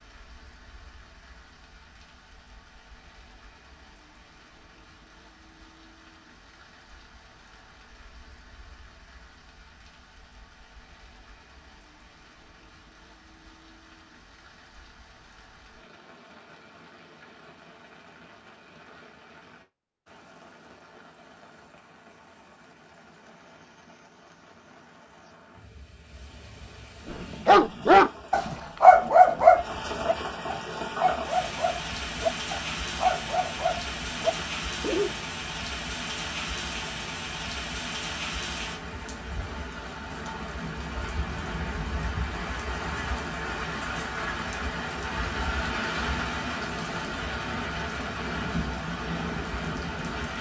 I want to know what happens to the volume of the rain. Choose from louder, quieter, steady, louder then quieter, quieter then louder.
louder.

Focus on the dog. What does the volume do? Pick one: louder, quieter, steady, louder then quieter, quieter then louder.
quieter.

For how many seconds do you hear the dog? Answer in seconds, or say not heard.
8 s.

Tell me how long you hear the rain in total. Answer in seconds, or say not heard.
50 s.